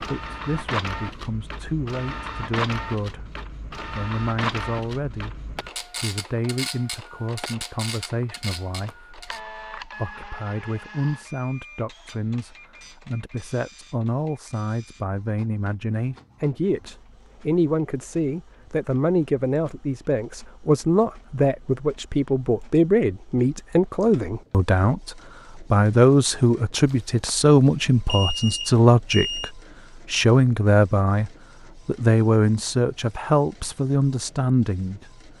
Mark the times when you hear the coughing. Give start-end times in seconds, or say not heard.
not heard.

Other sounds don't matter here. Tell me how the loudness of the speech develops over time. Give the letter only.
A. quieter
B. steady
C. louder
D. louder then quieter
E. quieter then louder
C.